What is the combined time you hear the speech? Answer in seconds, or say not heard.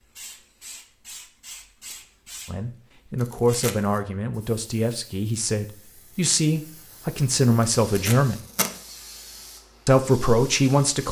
7 s.